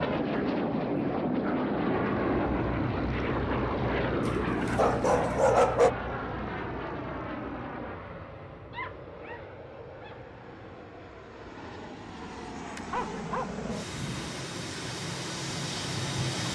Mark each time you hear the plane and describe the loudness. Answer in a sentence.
You can hear the plane from 0.0 to 16.4 s, getting quieter then louder.